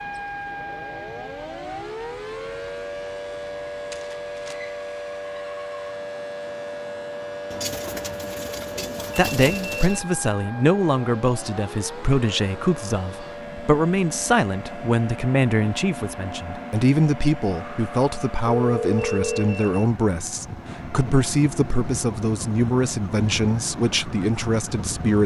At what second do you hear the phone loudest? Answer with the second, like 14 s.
19 s.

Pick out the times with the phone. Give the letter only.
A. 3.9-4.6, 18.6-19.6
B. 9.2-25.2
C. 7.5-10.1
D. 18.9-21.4
A.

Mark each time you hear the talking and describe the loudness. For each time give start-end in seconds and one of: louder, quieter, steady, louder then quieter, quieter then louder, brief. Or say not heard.
9.2-25.2 steady.